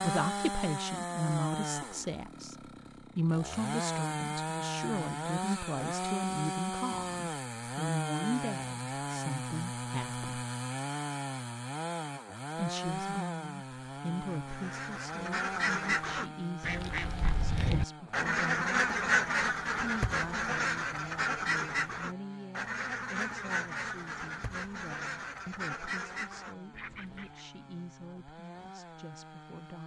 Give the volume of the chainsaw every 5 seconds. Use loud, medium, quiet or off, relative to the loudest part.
loud, loud, loud, medium, quiet, quiet.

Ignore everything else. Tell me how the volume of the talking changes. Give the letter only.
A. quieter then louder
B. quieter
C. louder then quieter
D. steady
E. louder
B.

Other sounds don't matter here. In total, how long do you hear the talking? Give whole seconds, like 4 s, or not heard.
27 s.